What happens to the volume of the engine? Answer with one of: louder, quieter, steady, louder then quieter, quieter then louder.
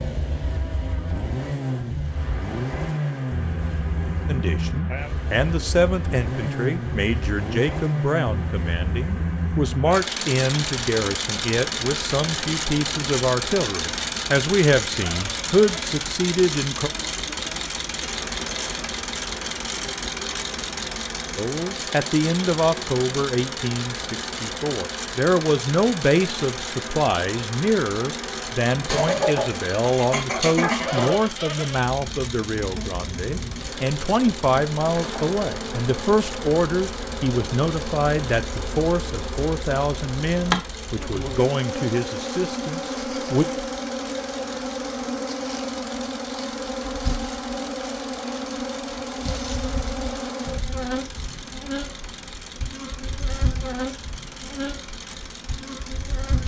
quieter.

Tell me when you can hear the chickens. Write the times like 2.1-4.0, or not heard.
28.9-31.1.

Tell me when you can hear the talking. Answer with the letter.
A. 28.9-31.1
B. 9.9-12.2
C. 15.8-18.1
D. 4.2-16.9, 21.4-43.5
D.